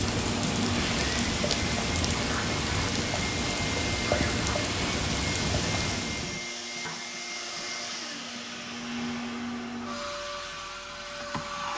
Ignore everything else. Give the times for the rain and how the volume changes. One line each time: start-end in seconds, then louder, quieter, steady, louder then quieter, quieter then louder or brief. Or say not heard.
0.0-6.5 steady.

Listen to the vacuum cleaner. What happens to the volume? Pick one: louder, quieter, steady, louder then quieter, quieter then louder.
steady.